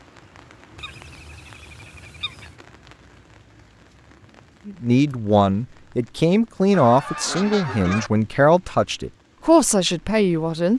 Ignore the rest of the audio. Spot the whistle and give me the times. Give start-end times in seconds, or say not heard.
not heard.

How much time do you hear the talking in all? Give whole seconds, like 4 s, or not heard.
6 s.